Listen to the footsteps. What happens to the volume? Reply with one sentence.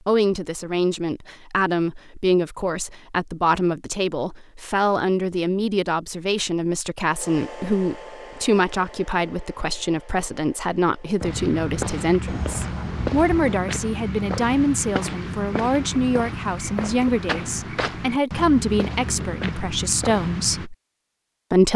The loudness of the footsteps stays about the same.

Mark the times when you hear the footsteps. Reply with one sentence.
The footsteps can be heard from 11.2 to 20.7 s.